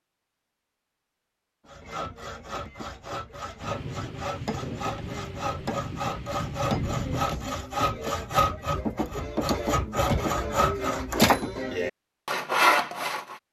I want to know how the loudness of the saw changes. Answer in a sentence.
The volume of the saw goes up.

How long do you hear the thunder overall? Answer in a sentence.
You can hear the thunder for 4 seconds altogether.